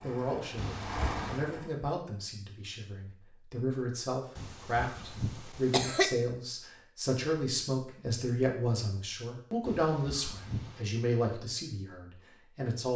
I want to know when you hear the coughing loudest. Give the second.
6 s.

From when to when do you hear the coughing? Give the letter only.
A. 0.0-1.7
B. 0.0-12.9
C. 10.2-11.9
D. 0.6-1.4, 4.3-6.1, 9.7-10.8
D.